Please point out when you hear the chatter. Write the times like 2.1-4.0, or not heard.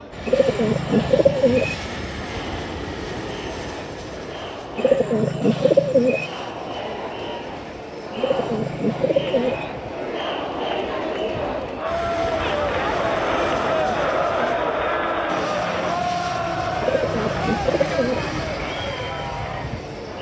0.0-20.1.